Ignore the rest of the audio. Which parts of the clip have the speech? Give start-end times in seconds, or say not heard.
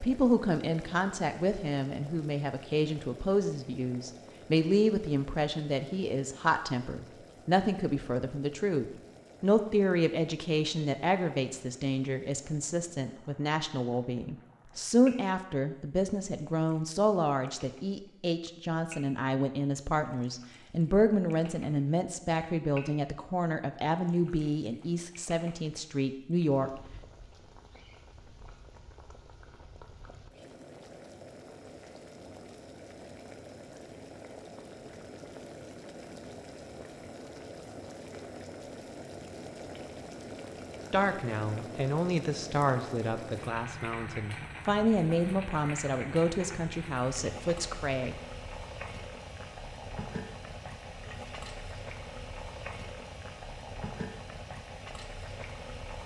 0.0-26.7, 40.9-48.1.